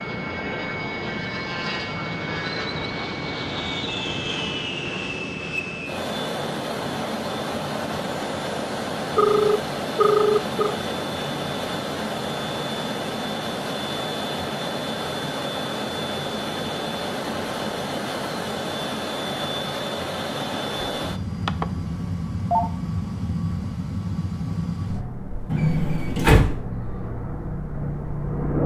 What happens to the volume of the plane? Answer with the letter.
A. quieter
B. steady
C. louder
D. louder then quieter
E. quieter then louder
B.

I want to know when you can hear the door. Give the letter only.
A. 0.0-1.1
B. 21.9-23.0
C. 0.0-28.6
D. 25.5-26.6
D.